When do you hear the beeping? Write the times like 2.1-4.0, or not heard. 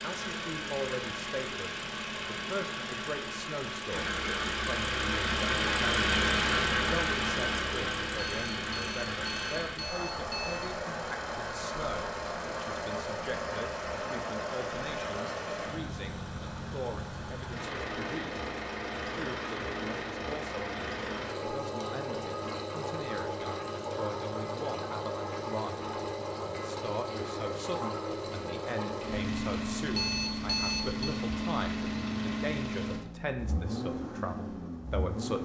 8.2-10.7, 29.9-31.1.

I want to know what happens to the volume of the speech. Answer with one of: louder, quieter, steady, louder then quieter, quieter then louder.
steady.